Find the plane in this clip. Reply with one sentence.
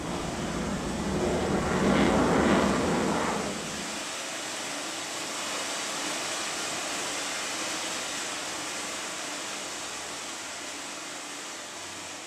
The plane can be heard from 0.0 to 4.0 s.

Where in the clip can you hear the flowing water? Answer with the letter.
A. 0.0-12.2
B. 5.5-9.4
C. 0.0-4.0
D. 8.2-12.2
A.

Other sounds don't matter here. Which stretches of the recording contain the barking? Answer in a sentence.
You can't hear the barking here.